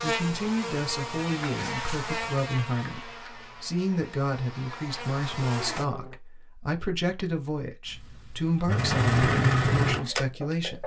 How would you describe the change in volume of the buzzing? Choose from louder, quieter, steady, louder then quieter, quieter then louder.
quieter then louder.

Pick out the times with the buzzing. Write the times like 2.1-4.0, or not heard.
0.0-6.2.